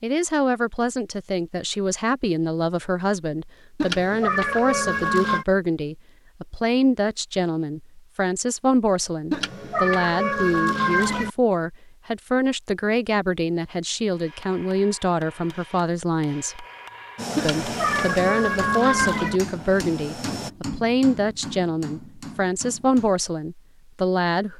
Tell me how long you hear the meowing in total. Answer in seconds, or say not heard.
6 s.